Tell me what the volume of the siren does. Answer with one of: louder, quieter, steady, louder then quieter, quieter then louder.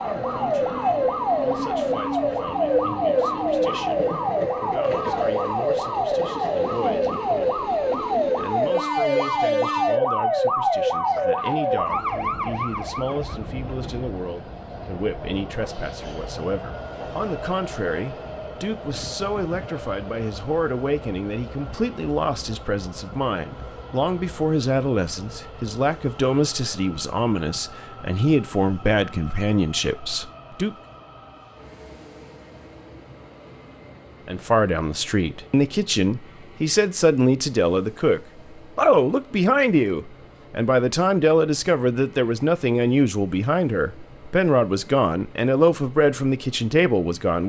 steady.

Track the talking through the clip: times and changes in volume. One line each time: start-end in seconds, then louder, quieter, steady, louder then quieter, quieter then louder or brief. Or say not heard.
0.0-30.8 louder
34.2-47.4 steady.